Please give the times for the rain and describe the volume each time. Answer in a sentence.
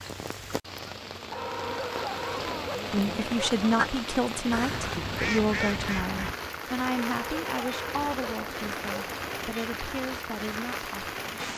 The rain can be heard from 0.0 to 11.5 s, at a steady volume.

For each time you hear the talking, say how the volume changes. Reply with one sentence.
The talking can be heard from 2.9 to 11.5 s, getting quieter.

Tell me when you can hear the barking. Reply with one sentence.
You can hear the barking from 1.3 to 3.9 s and from 6.8 to 9.6 s.